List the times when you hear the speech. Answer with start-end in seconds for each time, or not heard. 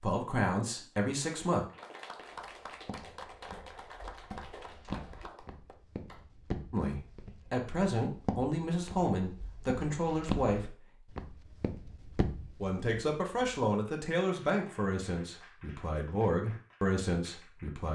0.0-1.6, 6.7-10.8, 12.6-17.9.